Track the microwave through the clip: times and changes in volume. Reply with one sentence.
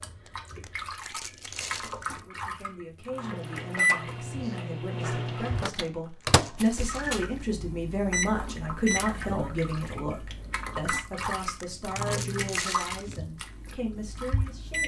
The microwave can be heard from 3.1 to 14.8 s, getting quieter.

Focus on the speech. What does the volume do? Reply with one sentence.
The volume of the speech goes up, then down.